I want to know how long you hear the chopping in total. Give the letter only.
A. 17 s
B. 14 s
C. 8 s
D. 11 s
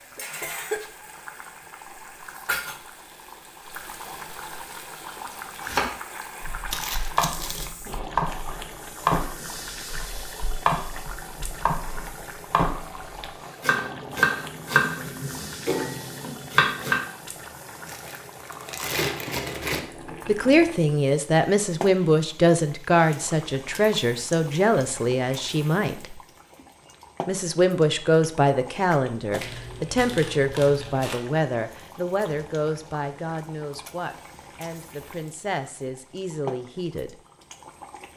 D.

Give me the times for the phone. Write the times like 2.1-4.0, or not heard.
not heard.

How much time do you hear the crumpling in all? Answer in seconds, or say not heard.
5 s.